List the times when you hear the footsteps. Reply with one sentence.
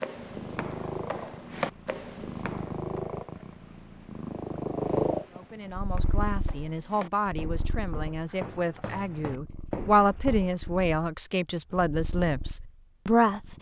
The footsteps can be heard from 0.0 to 3.0 s and from 5.8 to 10.6 s.